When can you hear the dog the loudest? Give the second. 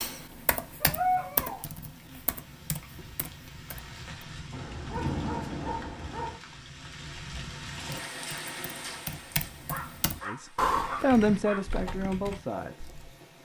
1 s.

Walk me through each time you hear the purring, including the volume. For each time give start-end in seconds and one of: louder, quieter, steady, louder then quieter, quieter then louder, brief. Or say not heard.
not heard.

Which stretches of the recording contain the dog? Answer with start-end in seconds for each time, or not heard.
0.8-1.6, 4.5-6.4, 9.7-11.6.